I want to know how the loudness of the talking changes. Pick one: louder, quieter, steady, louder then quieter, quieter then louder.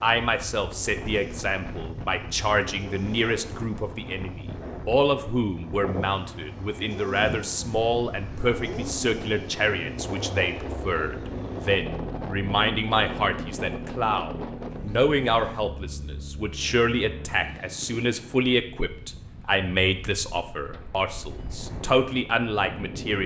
steady.